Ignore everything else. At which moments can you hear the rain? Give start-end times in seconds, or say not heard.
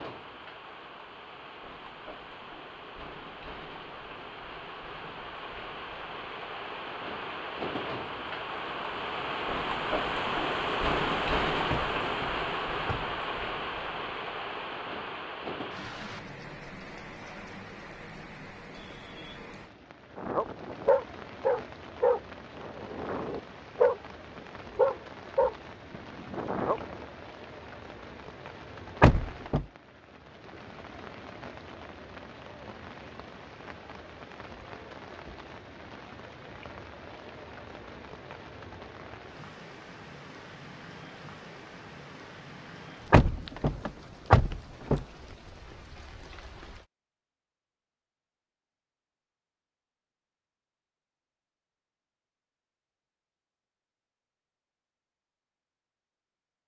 0.0-46.9.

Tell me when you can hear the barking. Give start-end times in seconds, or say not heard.
20.1-27.1.